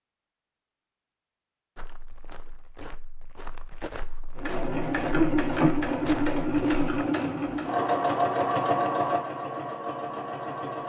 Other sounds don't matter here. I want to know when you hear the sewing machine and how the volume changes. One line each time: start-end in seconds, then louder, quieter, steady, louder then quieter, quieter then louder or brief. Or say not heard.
4.3-10.8 quieter.